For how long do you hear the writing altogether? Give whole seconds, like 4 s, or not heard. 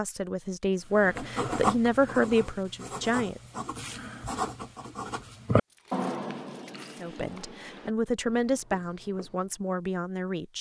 9 s.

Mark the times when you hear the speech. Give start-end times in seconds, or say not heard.
0.0-3.4, 7.0-10.5.